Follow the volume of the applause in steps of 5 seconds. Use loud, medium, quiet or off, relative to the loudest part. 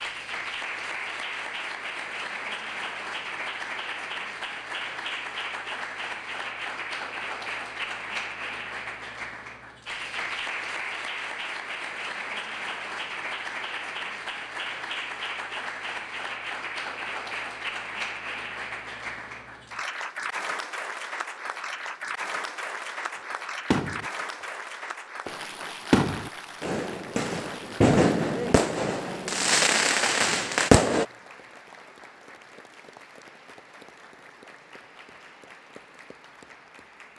loud, loud, loud, loud, loud, medium, quiet, quiet.